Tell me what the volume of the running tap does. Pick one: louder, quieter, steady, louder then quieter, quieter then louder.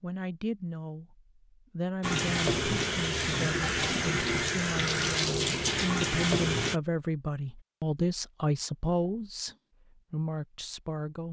steady.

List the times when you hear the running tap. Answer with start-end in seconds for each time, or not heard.
2.0-6.8.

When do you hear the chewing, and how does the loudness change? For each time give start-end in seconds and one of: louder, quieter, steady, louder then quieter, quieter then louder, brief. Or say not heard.
not heard.